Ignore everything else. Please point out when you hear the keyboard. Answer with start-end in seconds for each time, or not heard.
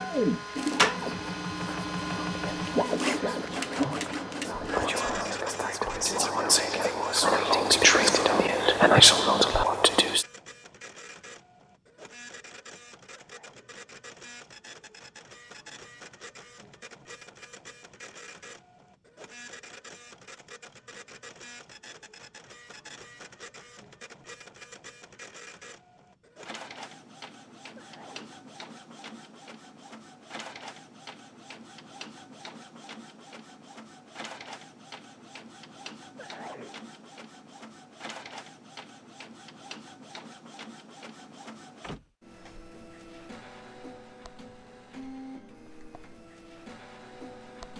not heard.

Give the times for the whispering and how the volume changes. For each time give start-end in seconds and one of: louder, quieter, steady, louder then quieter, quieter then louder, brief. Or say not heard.
0.8-10.2 louder.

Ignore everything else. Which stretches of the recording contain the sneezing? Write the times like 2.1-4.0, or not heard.
13.2-13.8, 27.8-28.4, 36.1-36.8.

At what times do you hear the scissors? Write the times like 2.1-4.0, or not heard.
not heard.